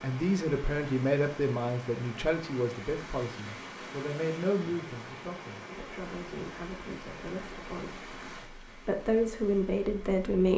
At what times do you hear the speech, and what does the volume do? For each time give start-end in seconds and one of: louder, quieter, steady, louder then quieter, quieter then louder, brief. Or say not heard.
0.0-10.5 quieter then louder.